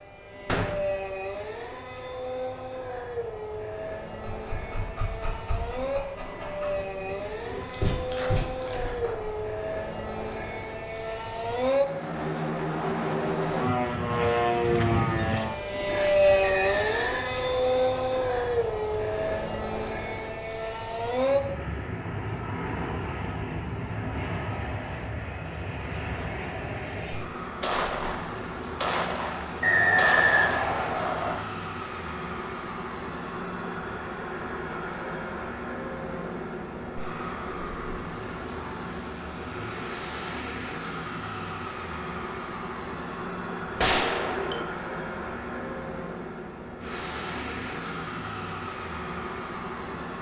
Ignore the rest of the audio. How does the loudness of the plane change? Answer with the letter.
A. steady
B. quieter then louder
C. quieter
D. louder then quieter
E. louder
D.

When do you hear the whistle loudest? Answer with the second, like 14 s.
30 s.